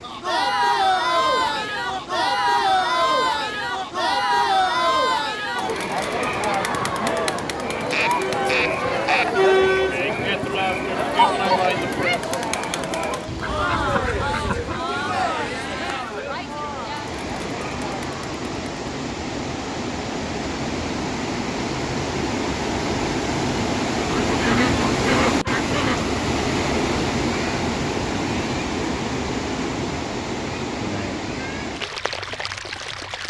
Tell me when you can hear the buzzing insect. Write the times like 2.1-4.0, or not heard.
not heard.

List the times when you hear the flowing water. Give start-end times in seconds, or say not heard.
0.0-33.2.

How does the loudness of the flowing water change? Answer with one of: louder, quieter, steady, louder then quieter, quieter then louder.
louder.